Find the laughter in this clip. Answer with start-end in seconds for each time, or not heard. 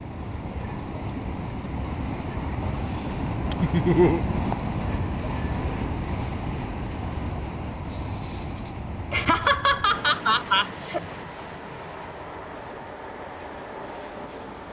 3.6-4.2, 9.1-11.0.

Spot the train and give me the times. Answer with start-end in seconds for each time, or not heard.
0.0-14.6.